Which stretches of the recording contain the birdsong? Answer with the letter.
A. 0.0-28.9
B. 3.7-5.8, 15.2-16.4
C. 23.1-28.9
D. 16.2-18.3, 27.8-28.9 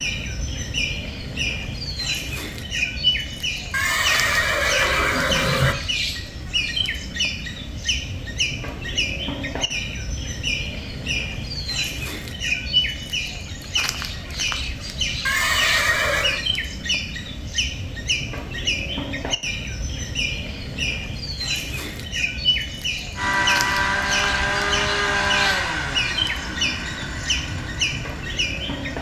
A.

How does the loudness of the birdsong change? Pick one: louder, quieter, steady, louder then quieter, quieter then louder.
steady.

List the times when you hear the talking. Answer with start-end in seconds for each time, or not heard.
not heard.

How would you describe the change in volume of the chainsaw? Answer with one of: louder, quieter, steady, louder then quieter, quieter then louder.
quieter.